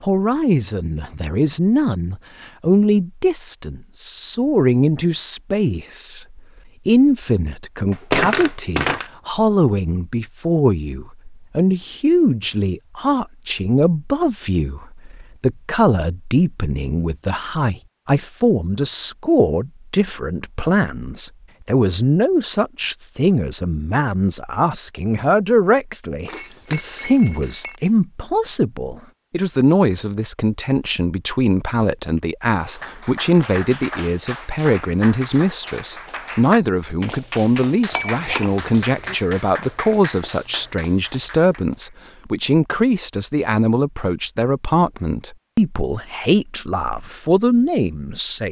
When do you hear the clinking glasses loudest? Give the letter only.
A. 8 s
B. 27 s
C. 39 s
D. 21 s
A.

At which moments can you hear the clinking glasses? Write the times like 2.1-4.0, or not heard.
7.9-9.1, 26.2-27.8, 37.9-39.1.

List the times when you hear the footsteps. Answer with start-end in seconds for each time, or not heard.
not heard.